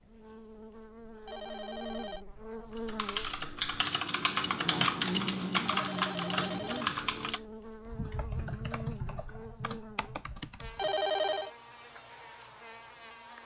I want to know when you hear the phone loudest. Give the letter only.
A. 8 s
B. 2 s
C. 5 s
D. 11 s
D.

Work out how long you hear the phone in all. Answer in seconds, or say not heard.
3 s.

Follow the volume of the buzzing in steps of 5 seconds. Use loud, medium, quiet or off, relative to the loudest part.
loud, loud, medium.